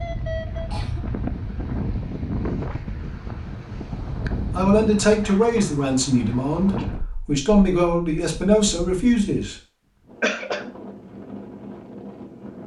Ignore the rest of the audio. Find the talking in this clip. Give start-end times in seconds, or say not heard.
4.5-9.6.